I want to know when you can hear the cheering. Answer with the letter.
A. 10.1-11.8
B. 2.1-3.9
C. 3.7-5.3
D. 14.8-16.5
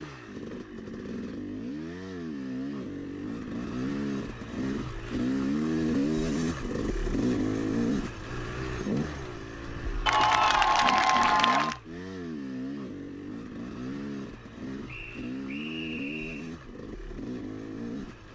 A.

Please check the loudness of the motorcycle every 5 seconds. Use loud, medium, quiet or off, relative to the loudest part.
medium, loud, medium, medium.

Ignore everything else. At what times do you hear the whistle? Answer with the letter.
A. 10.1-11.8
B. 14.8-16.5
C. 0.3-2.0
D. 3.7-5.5
B.